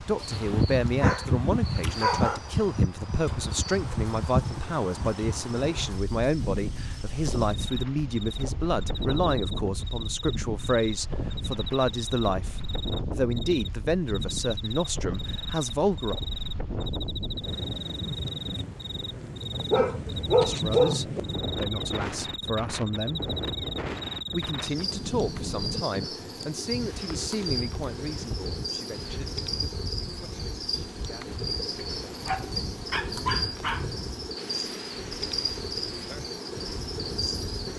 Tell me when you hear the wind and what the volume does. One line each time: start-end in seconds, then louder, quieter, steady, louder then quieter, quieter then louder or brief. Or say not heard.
0.0-37.7 quieter.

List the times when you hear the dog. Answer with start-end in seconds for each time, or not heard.
0.2-2.4, 19.7-21.2, 32.2-33.9.